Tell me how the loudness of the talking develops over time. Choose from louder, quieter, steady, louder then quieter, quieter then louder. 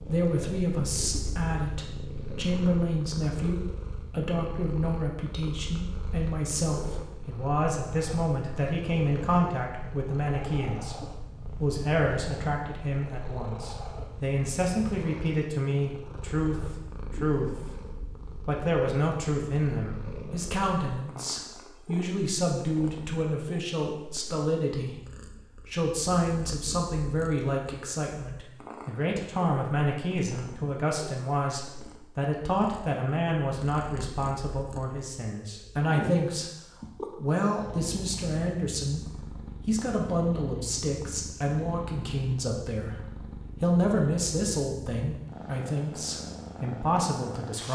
steady.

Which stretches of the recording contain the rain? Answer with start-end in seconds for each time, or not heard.
not heard.